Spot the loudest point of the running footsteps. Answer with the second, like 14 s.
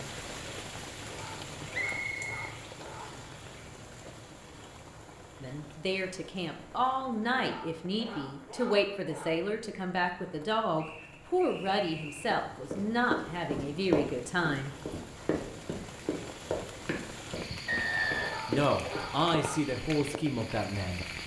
14 s.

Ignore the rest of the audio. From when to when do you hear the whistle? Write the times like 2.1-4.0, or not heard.
1.7-3.3, 10.8-12.2, 17.6-18.4.